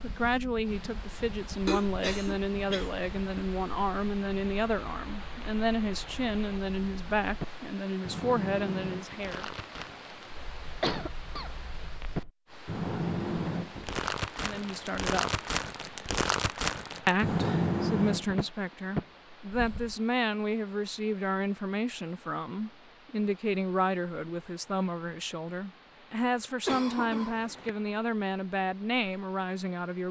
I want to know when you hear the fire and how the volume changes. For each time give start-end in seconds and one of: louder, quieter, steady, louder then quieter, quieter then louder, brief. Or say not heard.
0.0-19.9 louder.